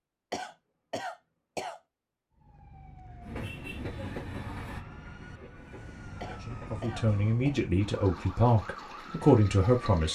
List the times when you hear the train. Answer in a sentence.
The train can be heard from 3.2 to 6.8 s.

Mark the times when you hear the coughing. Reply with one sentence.
You can hear the coughing from 0.3 to 1.8 s and from 6.2 to 7.6 s.